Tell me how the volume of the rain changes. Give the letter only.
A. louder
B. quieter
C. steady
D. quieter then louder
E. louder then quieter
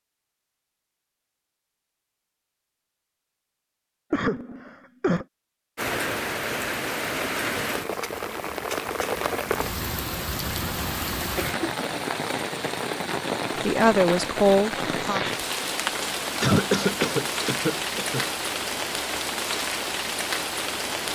C.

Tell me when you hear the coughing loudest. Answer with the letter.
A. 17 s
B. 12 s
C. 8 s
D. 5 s
A.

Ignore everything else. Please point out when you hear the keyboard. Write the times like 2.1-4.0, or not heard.
not heard.